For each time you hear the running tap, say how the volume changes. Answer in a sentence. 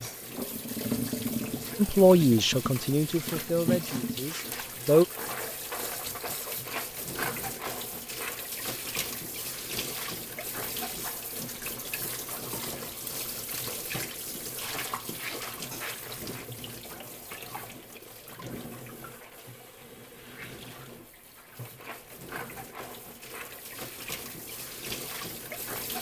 You can hear the running tap from 0.0 to 25.9 s, getting quieter.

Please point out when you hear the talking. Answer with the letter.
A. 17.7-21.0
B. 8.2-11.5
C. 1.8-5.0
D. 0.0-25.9
C.